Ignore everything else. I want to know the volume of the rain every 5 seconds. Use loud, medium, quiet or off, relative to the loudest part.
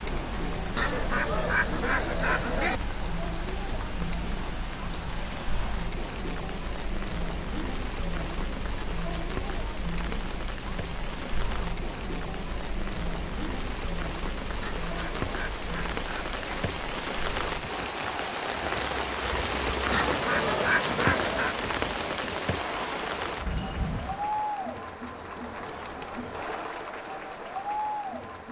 medium, medium, medium, loud, loud, off.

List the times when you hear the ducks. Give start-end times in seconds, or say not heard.
0.8-2.8, 14.6-16.6, 19.9-21.6.